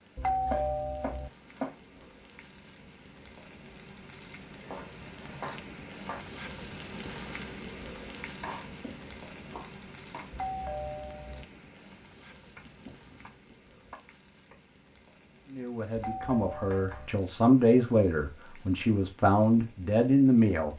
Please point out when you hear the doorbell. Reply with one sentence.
You can hear the doorbell from 0.1 to 1.3 s, from 10.3 to 11.4 s and from 15.9 to 17.1 s.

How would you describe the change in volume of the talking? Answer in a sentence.
The loudness of the talking goes up.